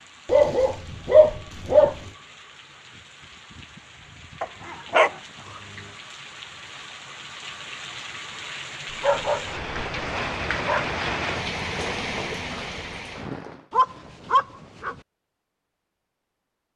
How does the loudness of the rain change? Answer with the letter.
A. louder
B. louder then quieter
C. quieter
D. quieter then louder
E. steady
A.